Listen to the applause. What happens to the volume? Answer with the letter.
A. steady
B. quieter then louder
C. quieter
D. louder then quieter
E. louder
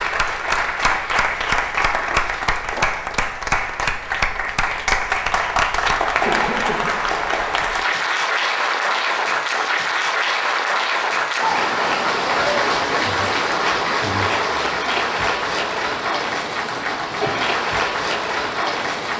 A.